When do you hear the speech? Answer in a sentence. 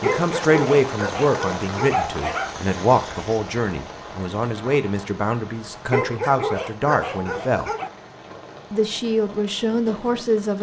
You can hear the speech from 0.0 to 7.7 s and from 8.7 to 10.5 s.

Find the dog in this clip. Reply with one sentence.
You can hear the dog from 0.0 to 2.6 s and from 5.9 to 7.9 s.